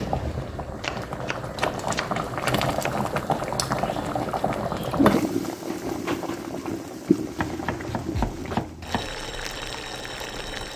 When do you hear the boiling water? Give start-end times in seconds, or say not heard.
0.0-10.7.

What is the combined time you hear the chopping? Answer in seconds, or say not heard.
4 s.